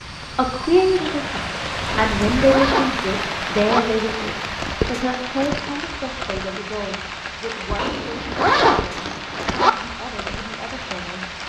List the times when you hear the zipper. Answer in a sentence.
The zipper can be heard from 1.9 to 3.8 s and from 7.8 to 9.7 s.